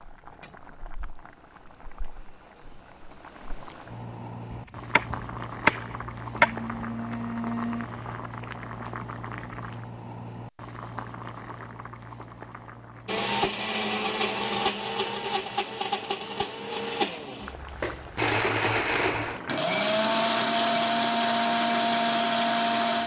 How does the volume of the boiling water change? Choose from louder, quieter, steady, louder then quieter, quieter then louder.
louder then quieter.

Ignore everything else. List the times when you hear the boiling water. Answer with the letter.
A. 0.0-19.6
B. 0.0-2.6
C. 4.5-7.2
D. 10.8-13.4
A.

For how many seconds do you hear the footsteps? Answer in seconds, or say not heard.
not heard.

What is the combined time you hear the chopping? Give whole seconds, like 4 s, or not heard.
3 s.